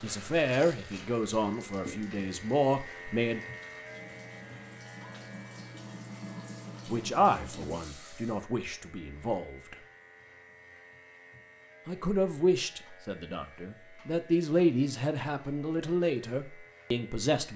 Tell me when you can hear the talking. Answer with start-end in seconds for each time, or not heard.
0.0-3.4, 6.8-9.8, 11.8-17.5.